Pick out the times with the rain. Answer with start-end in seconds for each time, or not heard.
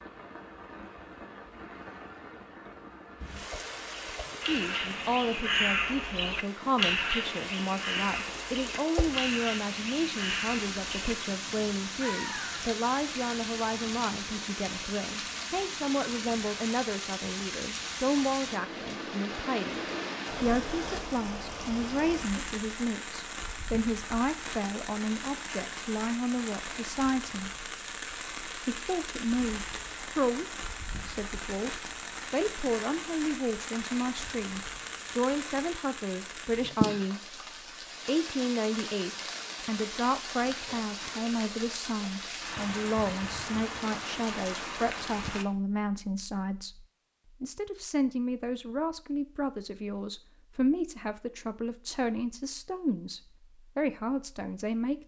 0.0-45.5.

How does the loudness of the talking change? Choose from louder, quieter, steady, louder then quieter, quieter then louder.
steady.